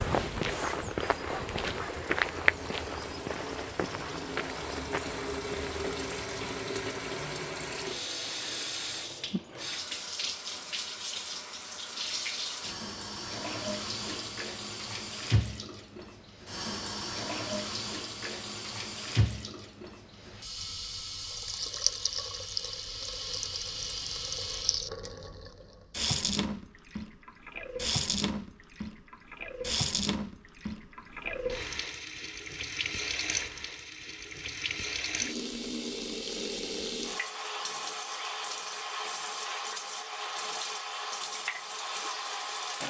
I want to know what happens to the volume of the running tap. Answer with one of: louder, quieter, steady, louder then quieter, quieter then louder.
steady.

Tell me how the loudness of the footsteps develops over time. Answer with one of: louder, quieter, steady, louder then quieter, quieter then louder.
quieter.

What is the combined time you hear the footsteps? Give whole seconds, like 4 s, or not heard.
6 s.